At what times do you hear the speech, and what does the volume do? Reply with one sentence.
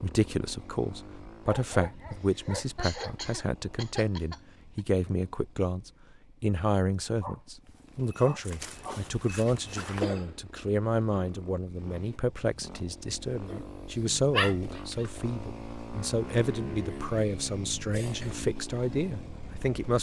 You can hear the speech from 0.0 to 19.9 s, at a steady volume.